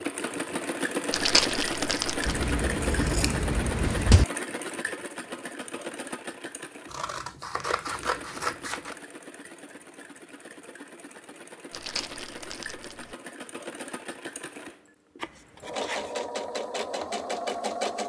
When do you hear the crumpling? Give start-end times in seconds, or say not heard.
1.1-2.5, 11.7-13.2.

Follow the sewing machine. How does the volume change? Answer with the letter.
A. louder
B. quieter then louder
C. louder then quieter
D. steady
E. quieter
B.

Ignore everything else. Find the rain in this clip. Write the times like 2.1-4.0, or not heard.
not heard.